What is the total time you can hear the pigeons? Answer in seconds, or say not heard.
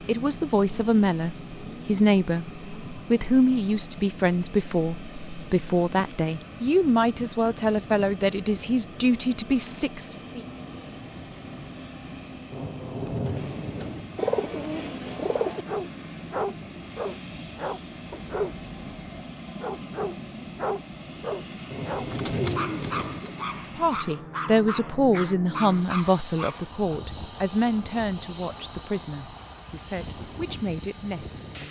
6 s.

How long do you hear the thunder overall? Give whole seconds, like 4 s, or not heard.
3 s.